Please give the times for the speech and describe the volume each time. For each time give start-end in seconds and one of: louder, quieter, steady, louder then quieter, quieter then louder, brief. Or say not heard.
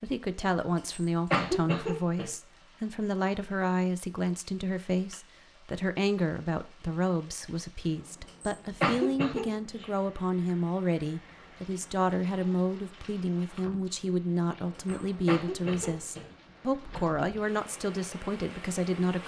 0.0-19.2 steady.